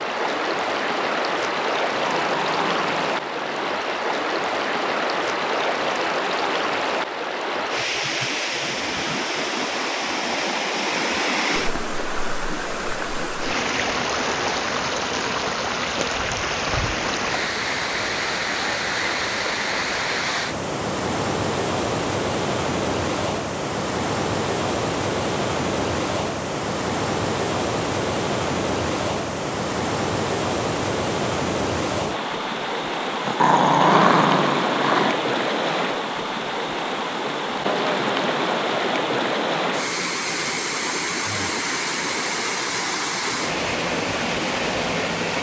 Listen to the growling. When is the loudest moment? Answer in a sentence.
The volume of the growling peaks at 34 seconds.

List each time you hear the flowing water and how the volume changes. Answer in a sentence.
The flowing water can be heard from 0.0 to 45.3 s, at a steady volume.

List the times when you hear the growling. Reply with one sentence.
The growling can be heard from 1.9 to 3.8 s and from 33.2 to 35.1 s.